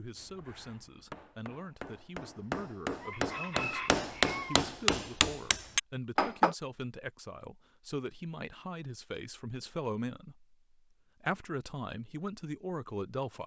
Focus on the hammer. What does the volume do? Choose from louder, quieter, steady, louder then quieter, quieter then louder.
louder.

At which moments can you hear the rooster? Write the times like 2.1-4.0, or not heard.
3.0-4.7.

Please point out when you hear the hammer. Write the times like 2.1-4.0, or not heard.
0.1-6.5.